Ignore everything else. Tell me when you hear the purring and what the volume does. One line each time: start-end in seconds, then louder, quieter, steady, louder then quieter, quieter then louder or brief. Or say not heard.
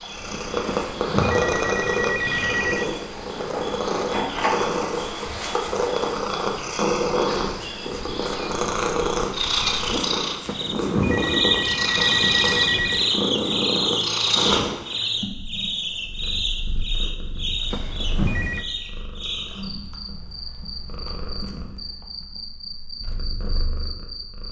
0.0-24.4 quieter.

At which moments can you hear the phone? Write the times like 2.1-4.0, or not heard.
0.7-2.9, 10.4-13.1, 17.7-18.6.